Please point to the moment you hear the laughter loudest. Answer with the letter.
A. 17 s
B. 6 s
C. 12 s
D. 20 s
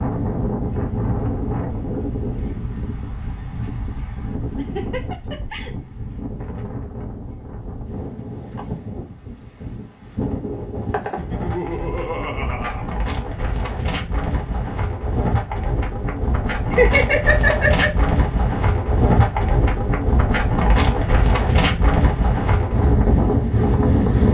A.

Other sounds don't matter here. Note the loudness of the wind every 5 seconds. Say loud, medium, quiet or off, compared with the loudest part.
medium, quiet, medium, loud, loud.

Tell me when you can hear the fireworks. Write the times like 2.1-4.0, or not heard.
not heard.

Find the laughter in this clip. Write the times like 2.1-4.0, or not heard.
4.5-5.7, 11.2-12.8, 16.7-17.9.